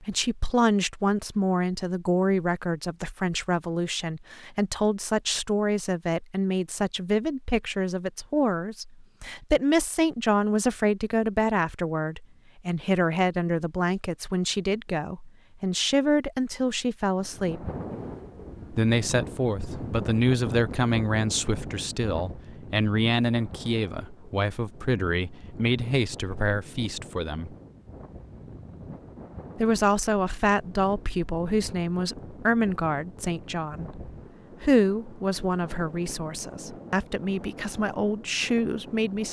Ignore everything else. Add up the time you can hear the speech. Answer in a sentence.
The speech can be heard for 36 seconds in total.